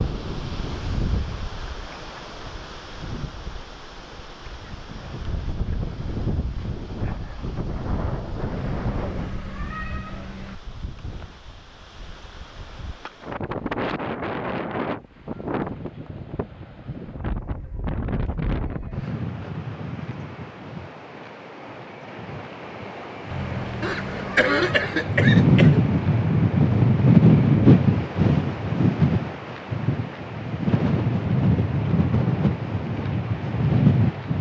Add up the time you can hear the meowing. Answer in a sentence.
The meowing can be heard for 4 seconds in total.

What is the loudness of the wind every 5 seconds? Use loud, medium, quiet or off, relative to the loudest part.
quiet, quiet, quiet, quiet, quiet, loud, medium.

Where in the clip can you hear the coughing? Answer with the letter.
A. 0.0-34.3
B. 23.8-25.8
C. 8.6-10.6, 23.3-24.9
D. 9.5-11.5
B.